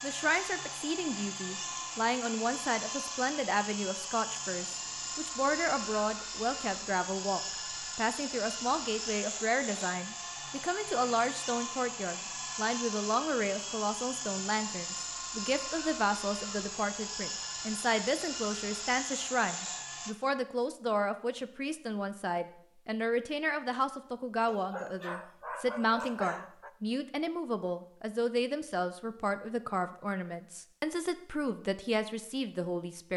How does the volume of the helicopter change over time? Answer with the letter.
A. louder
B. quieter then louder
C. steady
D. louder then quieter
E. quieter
C.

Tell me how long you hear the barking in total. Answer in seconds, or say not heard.
2 s.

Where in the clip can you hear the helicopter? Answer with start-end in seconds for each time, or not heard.
0.0-20.1.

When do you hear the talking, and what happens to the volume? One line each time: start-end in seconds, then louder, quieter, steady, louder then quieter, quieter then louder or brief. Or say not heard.
0.0-33.1 steady.